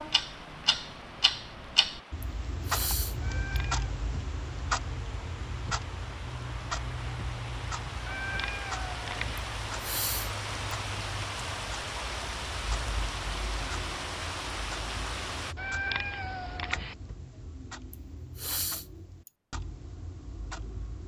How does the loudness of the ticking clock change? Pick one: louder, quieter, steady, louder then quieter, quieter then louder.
quieter.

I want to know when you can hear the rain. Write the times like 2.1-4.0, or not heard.
0.0-15.6.